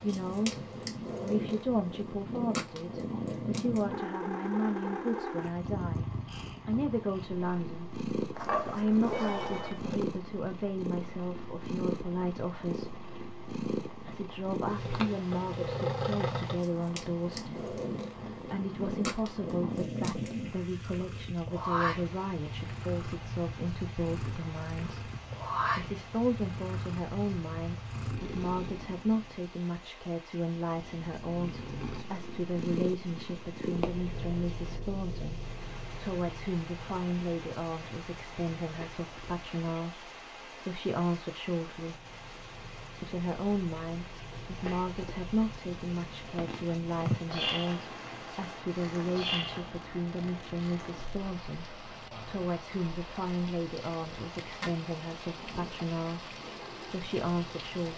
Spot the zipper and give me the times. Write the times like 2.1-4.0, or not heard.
8.3-10.1, 54.1-54.8.